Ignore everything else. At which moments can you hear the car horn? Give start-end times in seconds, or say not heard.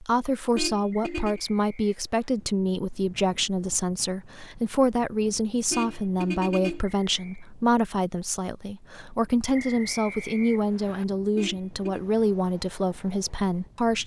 0.6-1.4, 5.7-6.8, 11.3-12.0.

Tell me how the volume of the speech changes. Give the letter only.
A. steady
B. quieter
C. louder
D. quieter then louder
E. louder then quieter
A.